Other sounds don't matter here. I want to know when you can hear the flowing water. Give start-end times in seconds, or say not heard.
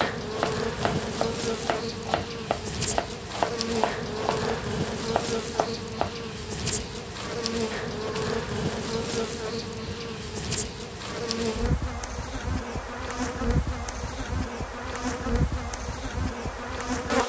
not heard.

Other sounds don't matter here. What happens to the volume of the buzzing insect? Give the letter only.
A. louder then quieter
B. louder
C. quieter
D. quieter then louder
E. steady
E.